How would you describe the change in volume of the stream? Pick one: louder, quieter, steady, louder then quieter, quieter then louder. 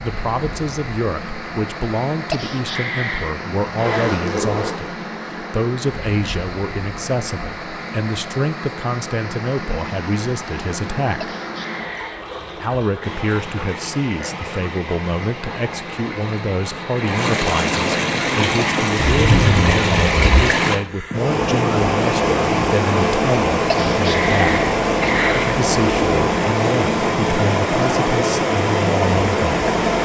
louder.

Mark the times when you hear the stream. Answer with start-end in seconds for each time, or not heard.
0.0-30.0.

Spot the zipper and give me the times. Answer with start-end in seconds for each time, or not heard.
3.6-4.8, 19.1-20.4.